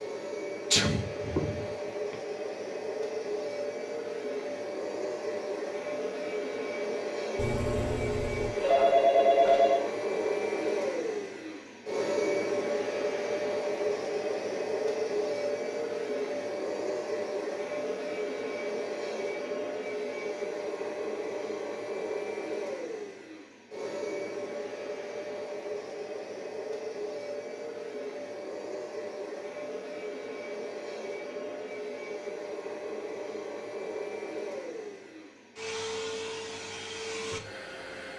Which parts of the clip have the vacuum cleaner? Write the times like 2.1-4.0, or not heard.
0.0-38.1.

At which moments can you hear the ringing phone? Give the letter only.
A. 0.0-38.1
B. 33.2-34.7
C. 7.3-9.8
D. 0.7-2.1
C.